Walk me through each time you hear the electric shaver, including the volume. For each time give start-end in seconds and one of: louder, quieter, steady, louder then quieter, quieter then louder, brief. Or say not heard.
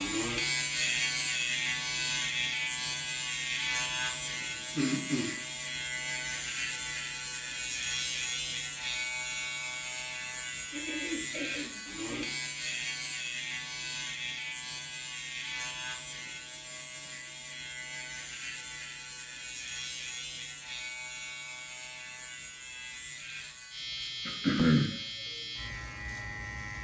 0.0-26.7 quieter.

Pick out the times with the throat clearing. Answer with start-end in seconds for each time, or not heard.
4.5-5.4, 10.7-12.3, 24.2-24.9.